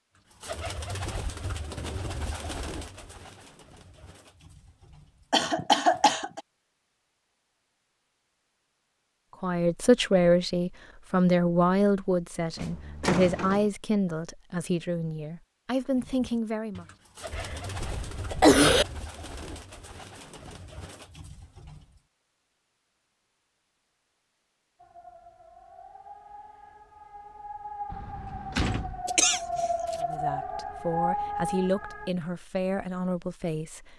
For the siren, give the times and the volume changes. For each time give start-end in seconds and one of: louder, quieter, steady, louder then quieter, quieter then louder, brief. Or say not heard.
24.8-32.1 louder.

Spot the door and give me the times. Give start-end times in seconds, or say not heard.
12.6-13.7, 27.9-29.1.